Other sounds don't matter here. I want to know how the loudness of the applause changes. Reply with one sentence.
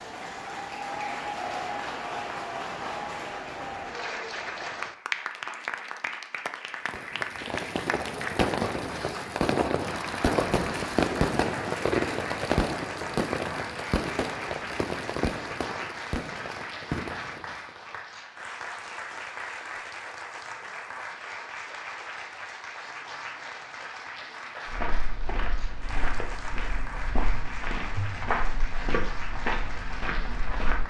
The volume of the applause goes down.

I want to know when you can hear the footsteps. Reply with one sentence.
The footsteps can be heard from 24.6 to 30.8 s.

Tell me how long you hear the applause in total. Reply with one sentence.
The applause can be heard for 31 seconds in total.